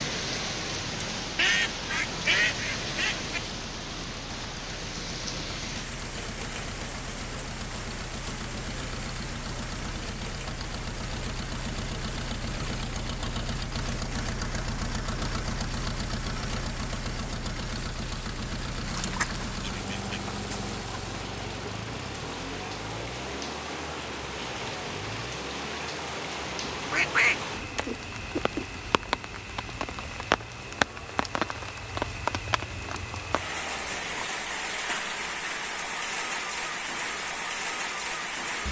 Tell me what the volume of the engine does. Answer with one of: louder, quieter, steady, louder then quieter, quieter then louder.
louder then quieter.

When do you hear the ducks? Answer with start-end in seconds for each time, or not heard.
1.4-3.4, 18.8-20.6, 26.9-28.6.